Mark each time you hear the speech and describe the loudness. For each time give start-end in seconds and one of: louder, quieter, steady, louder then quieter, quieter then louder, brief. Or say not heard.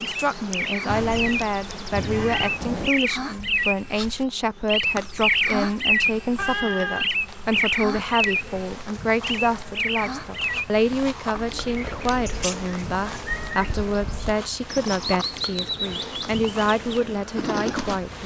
0.0-18.2 steady.